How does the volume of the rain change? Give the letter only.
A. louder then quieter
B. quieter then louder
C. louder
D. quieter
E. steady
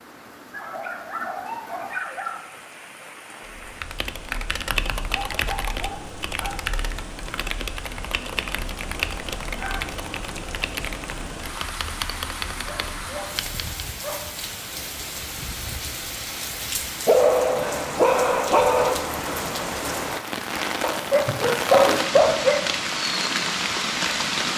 C.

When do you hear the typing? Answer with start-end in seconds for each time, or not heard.
3.6-13.7.